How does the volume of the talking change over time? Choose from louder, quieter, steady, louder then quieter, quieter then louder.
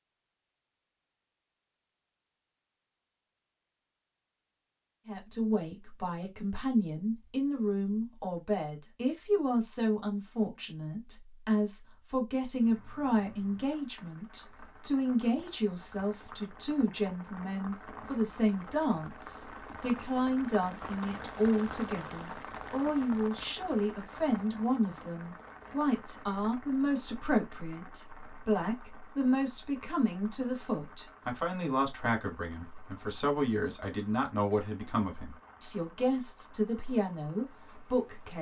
steady.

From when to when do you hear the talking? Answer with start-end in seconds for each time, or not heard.
5.0-38.3.